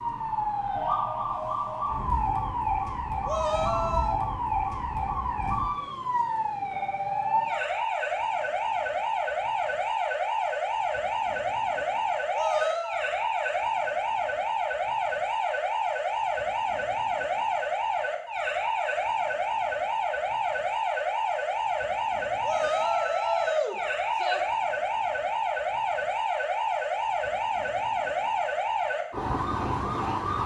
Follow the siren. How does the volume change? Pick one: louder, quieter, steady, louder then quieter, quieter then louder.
steady.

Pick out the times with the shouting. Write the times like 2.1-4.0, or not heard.
3.2-4.2, 12.3-13.0, 22.4-24.4.